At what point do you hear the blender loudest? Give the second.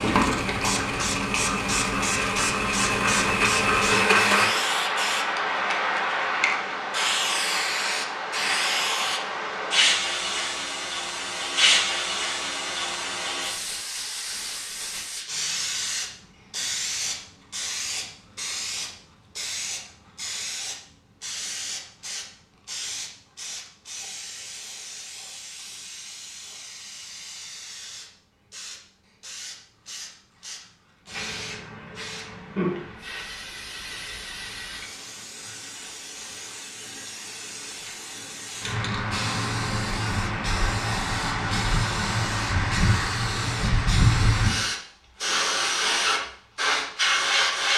4 s.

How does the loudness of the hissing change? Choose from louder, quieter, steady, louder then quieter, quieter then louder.
quieter then louder.